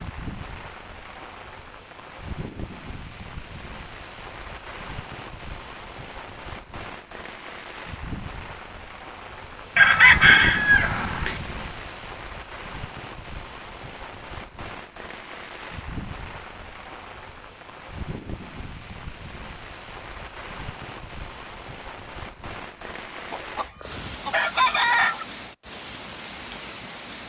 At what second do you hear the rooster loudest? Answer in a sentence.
The volume of the rooster peaks at 10 seconds.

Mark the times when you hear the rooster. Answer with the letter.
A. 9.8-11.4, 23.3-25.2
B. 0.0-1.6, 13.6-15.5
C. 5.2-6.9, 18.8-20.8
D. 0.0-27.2
A.